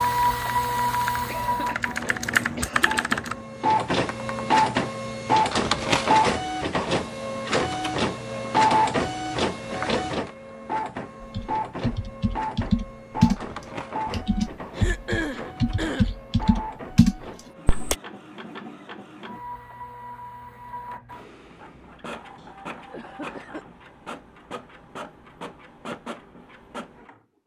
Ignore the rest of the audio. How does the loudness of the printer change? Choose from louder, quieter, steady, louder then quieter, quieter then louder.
quieter.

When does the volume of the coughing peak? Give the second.
15 s.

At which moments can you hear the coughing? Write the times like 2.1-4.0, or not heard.
1.2-3.2, 14.8-16.1, 22.4-23.6.